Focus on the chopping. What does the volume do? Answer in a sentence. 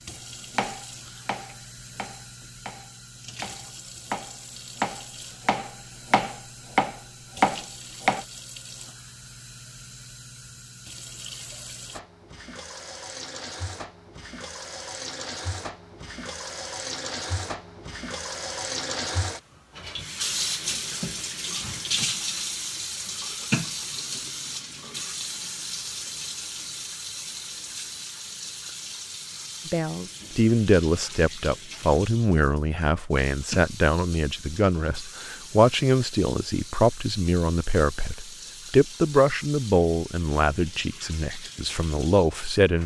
The loudness of the chopping goes down, then up.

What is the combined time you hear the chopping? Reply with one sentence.
You can hear the chopping for 8 seconds altogether.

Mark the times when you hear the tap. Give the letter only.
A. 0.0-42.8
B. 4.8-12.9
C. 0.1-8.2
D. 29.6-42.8
A.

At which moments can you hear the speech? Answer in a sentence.
The speech can be heard from 29.6 to 42.8 s.